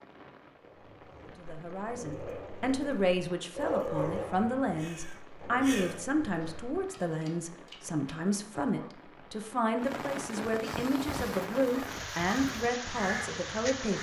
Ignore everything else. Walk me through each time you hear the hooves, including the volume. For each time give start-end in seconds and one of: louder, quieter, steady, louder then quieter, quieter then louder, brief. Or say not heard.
not heard.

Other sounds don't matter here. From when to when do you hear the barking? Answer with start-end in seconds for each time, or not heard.
0.6-8.9.